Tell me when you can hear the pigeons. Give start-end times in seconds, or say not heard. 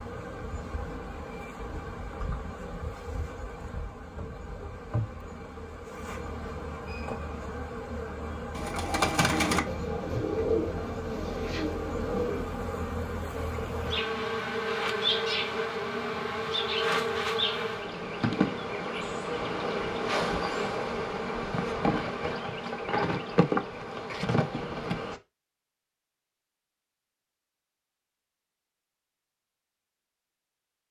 8.6-12.4.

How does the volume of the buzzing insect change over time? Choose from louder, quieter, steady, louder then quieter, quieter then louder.
louder.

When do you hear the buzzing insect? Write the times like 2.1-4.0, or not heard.
0.0-25.2.